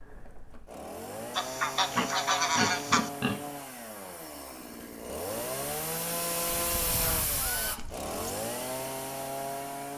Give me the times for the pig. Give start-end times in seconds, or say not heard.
1.9-3.4.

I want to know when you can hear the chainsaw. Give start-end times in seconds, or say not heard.
0.0-9.9.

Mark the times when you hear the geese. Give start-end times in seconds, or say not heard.
1.4-3.1, 6.7-8.4.